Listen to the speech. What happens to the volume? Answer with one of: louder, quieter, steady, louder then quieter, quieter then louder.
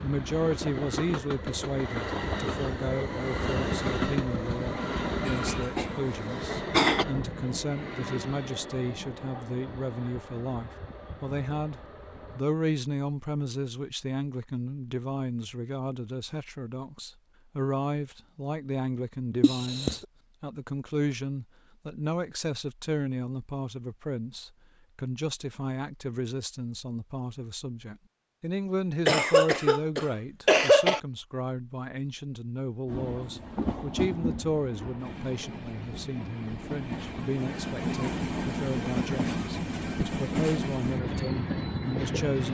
steady.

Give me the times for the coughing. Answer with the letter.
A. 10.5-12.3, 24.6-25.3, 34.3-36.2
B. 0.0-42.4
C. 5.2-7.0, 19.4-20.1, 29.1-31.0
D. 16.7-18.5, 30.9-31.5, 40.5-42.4
C.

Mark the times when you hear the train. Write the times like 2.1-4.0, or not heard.
0.0-12.4, 32.9-42.4.